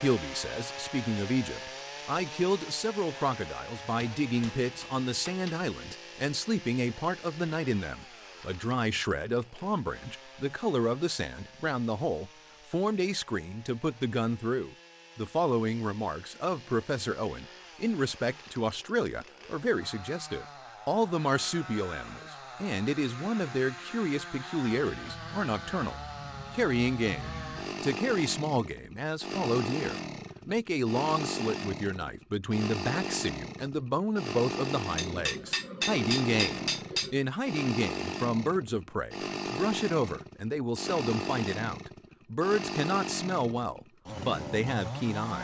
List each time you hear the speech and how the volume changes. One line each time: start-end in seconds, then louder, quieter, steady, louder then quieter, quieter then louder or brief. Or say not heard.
0.0-45.3 steady.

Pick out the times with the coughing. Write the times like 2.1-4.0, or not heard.
not heard.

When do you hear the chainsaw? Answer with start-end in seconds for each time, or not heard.
0.0-45.3.